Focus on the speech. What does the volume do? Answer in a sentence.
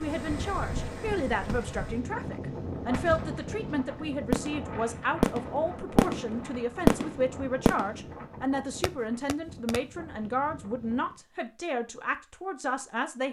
The volume of the speech stays about the same.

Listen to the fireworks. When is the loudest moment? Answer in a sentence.
The volume of the fireworks peaks at 7 seconds.